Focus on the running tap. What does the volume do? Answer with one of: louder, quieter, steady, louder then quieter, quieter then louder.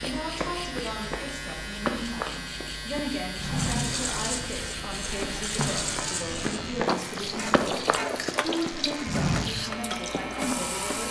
steady.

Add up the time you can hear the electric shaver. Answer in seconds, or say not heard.
11 s.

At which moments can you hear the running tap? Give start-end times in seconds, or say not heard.
3.4-11.0.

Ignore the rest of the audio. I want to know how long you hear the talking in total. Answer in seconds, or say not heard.
11 s.